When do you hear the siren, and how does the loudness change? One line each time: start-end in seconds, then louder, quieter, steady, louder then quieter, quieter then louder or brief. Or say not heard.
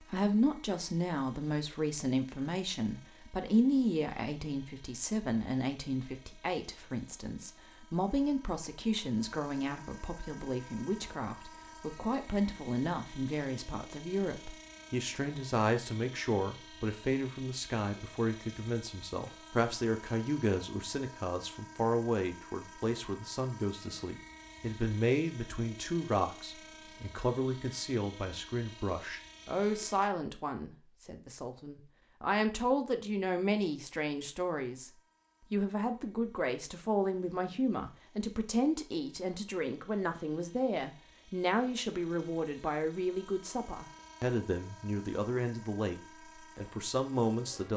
not heard.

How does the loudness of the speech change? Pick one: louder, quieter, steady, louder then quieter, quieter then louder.
steady.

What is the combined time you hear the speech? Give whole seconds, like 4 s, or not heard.
47 s.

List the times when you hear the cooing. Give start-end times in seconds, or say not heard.
not heard.